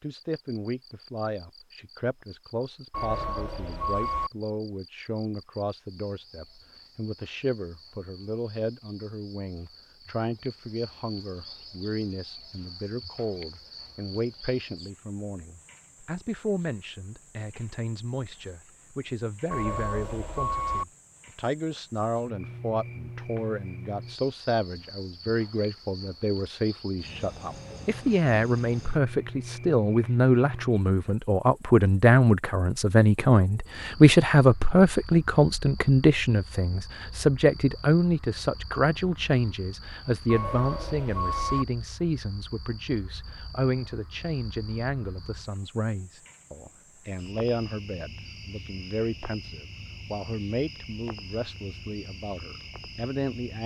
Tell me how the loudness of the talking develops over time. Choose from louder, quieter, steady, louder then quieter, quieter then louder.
louder then quieter.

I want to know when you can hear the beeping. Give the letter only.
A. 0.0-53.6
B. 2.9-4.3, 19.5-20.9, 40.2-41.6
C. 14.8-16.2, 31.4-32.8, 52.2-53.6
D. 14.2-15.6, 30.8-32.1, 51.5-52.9
B.